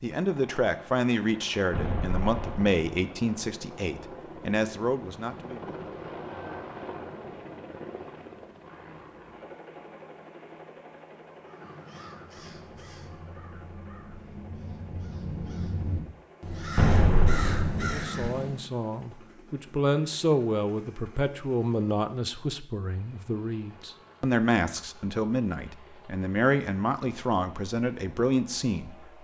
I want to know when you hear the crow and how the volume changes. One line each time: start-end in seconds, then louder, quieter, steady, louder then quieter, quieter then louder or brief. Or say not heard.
11.4-18.7 louder.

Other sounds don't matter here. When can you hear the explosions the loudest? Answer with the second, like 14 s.
17 s.